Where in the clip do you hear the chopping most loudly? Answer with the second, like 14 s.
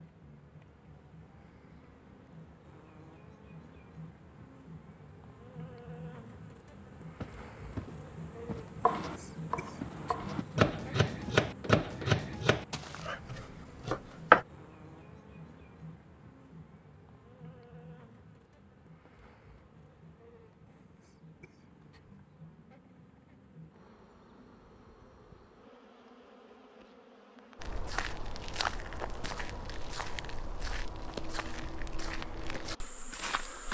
14 s.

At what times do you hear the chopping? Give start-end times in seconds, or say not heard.
8.8-14.4.